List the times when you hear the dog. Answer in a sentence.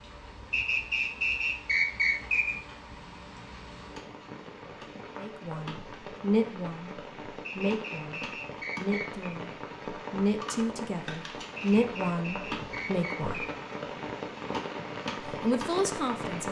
You can't hear the dog here.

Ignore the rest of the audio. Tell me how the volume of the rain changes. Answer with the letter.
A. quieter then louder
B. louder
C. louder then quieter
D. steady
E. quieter
B.